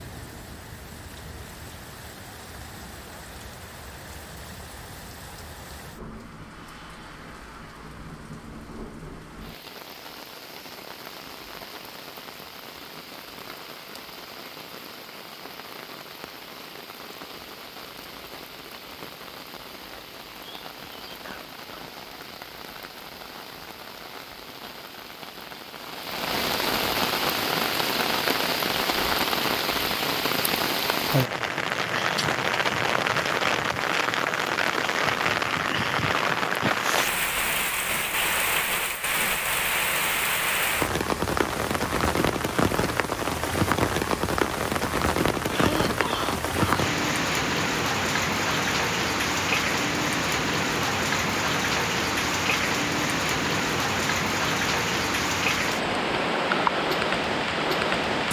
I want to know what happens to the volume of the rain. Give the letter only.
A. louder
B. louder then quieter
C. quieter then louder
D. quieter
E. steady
A.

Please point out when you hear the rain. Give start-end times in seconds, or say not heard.
0.0-58.2.